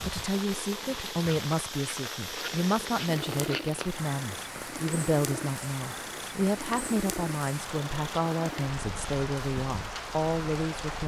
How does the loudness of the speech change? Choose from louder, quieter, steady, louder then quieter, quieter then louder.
steady.